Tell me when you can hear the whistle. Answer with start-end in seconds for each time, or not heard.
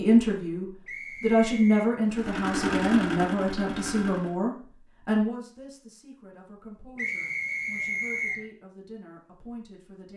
0.8-1.9, 7.0-8.4.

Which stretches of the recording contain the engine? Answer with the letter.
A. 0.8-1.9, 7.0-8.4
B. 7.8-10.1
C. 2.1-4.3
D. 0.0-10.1
C.